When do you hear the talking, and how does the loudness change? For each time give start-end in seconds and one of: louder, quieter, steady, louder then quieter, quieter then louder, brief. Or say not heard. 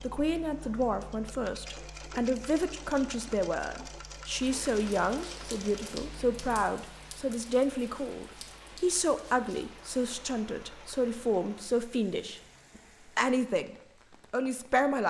0.0-15.0 steady.